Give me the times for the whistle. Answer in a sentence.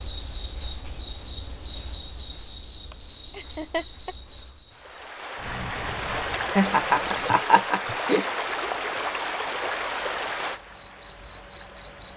The whistle can't be heard in this clip.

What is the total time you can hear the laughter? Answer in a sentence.
The laughter can be heard for 3 seconds in total.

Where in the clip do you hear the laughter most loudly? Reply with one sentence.
The volume of the laughter peaks at 7 seconds.